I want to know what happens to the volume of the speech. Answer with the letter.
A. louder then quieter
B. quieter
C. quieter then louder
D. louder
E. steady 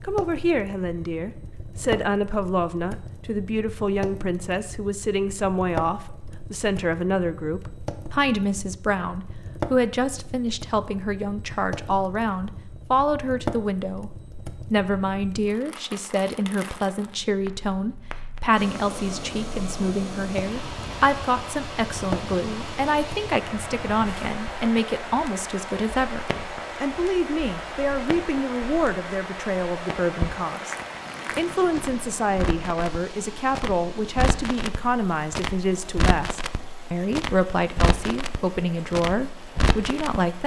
E.